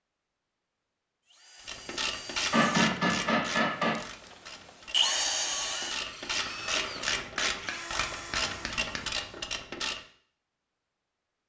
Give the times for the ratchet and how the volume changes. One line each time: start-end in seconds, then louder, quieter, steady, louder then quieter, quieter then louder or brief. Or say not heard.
1.6-10.0 quieter then louder.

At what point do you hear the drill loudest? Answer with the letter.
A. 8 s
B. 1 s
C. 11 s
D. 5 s
D.